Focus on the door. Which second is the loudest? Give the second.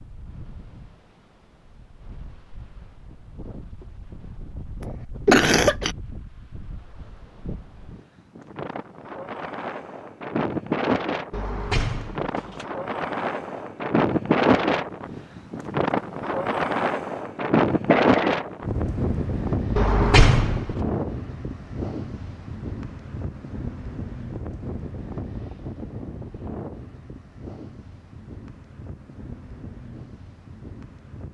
20 s.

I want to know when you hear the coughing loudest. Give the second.
5 s.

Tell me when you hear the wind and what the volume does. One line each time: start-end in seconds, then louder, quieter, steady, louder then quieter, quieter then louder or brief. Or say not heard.
0.0-31.2 louder then quieter.